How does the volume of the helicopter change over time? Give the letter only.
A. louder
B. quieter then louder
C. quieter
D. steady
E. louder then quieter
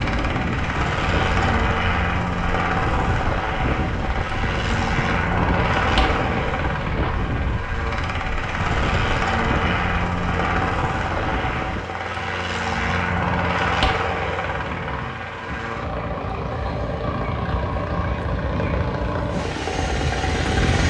D.